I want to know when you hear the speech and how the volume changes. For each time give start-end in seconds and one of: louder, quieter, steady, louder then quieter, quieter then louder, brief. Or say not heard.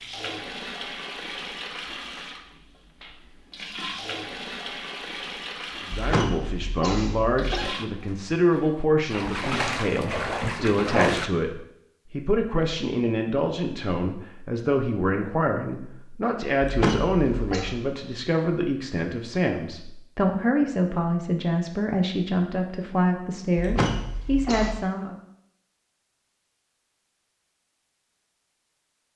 5.8-25.1 steady.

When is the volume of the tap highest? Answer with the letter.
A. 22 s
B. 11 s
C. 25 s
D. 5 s
B.